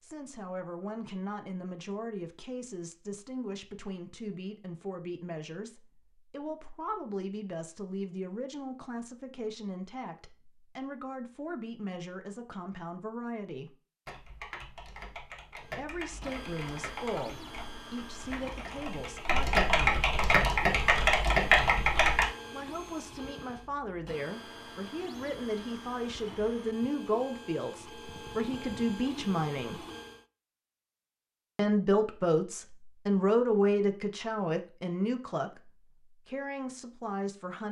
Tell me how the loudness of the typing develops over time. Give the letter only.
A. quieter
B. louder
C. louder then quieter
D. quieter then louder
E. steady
B.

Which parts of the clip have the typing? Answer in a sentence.
You can hear the typing from 14.1 to 22.2 s.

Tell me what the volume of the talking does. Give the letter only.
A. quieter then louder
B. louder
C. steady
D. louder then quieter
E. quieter
B.